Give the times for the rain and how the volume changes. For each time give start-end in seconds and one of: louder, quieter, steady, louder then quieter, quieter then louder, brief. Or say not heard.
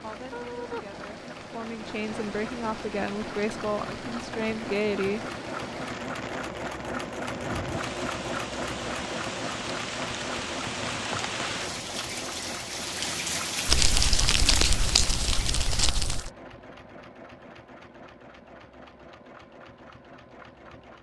0.0-15.9 louder.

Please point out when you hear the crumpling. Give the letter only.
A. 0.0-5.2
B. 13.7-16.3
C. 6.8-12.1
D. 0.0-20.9
B.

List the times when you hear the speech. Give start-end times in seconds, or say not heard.
0.0-5.2.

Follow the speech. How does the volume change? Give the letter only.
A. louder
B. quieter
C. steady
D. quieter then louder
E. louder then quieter
A.